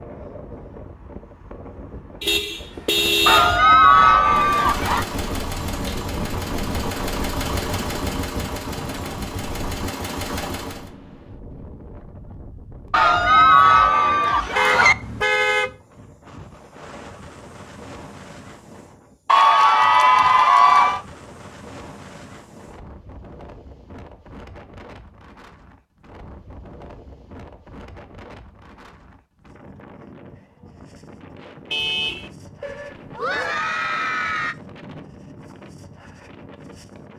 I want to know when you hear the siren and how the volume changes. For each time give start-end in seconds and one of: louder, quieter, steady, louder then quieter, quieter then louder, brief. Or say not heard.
not heard.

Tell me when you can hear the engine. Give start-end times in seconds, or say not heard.
4.2-10.9.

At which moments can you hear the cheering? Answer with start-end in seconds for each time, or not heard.
3.2-5.0, 12.9-14.9, 19.2-21.0, 32.6-34.5.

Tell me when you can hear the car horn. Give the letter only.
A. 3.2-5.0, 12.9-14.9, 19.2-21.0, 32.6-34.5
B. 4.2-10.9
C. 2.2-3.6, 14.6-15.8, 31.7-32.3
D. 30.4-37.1
C.